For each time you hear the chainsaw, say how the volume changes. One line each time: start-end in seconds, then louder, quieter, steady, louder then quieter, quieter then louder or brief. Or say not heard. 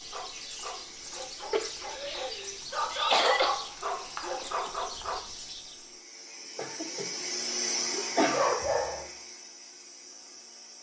0.0-10.7 louder then quieter.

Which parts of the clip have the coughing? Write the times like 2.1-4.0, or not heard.
1.5-3.5, 6.5-7.1, 7.9-8.6.